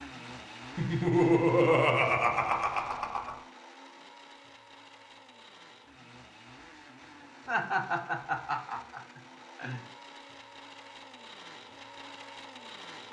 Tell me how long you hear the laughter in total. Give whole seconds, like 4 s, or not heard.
5 s.